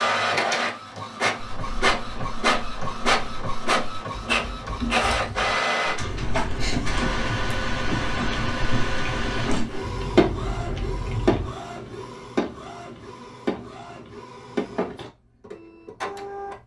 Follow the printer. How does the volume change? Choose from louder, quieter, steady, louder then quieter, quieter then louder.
quieter.